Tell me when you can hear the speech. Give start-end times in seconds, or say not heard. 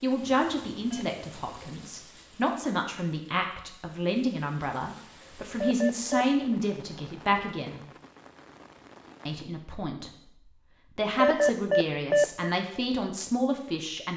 0.0-7.8, 9.2-10.1, 10.9-14.1.